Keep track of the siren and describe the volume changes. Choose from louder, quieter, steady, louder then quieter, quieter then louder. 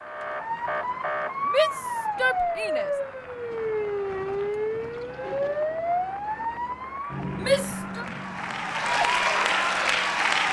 quieter.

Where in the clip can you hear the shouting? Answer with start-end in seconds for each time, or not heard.
1.4-2.9, 7.4-8.1.